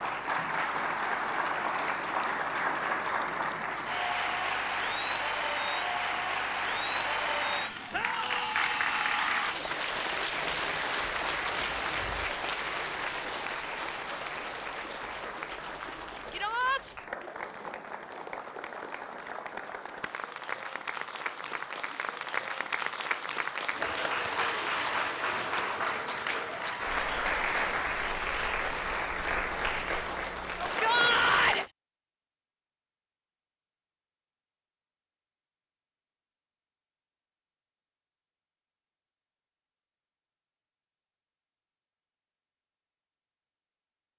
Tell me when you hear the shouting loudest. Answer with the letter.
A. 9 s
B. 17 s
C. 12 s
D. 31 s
D.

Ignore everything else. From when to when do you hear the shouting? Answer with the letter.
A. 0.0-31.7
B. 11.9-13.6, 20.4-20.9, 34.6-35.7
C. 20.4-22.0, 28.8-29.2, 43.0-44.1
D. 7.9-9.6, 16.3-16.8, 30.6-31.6
D.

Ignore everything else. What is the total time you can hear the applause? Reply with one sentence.
The applause can be heard for 32 seconds in total.